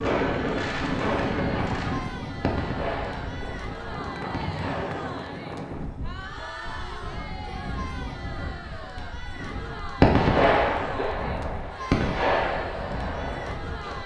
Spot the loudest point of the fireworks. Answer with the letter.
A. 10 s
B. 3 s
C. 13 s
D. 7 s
A.